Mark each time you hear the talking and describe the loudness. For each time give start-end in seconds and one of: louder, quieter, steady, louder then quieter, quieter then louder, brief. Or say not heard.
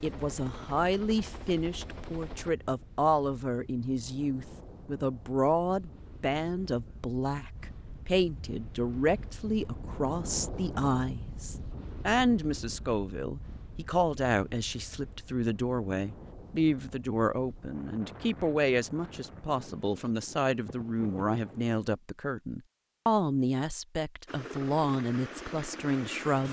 0.0-26.4 steady.